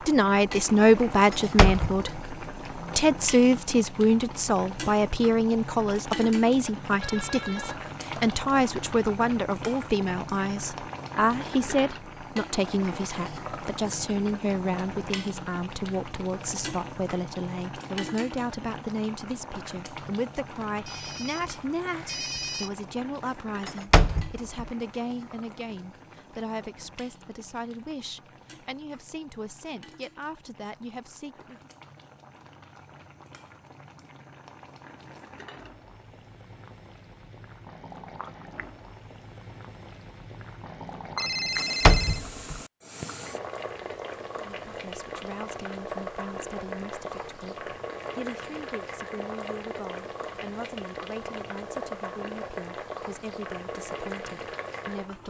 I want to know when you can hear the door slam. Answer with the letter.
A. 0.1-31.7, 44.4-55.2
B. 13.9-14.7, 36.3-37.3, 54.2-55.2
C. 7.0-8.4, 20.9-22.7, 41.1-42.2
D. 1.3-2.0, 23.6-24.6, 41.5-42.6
D.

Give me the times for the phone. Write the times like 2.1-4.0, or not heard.
7.0-8.4, 20.9-22.7, 41.1-42.2.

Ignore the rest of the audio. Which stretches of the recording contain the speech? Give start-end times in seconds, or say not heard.
0.1-31.7, 44.4-55.2.